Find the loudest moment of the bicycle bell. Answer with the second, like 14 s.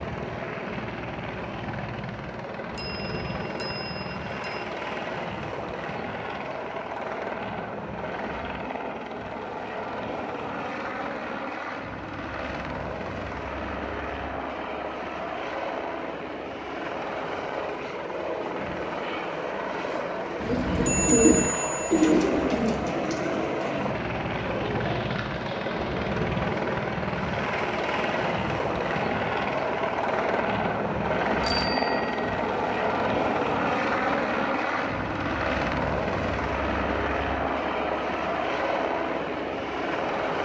21 s.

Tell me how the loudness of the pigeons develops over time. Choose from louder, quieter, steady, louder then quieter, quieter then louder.
quieter.